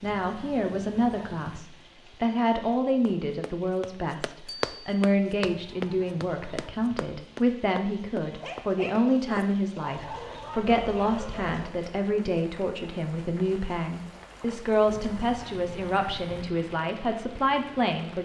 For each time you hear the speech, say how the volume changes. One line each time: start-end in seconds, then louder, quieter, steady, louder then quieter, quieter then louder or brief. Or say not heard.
0.0-18.2 steady.